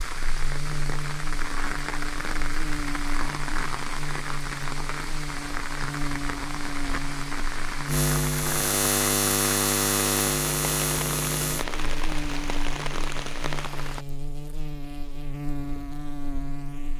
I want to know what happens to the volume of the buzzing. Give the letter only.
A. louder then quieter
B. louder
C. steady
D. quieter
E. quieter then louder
A.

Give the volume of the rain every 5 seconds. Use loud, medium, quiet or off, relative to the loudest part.
loud, loud, loud, off.